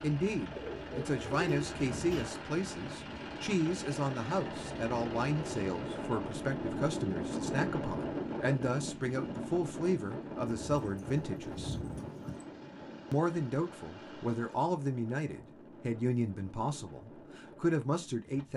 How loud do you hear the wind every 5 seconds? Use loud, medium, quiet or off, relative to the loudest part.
medium, loud, medium, quiet.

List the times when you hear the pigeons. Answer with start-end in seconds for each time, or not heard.
0.5-2.2, 10.4-12.4.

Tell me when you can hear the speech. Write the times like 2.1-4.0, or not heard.
0.0-11.8, 13.1-18.5.